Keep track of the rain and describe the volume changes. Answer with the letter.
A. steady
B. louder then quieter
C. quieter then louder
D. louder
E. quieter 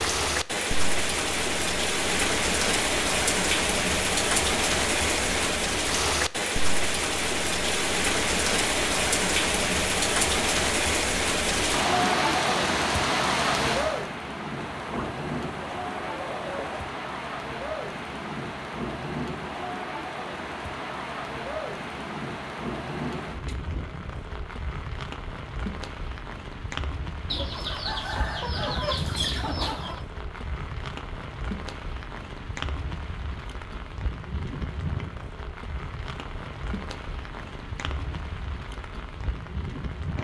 E.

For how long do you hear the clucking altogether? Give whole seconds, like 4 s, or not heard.
5 s.